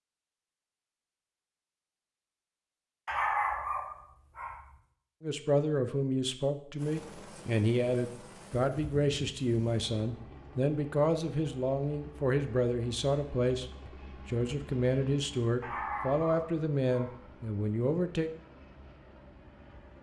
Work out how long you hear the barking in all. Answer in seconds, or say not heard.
3 s.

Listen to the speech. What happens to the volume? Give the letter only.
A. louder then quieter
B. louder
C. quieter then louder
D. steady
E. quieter
D.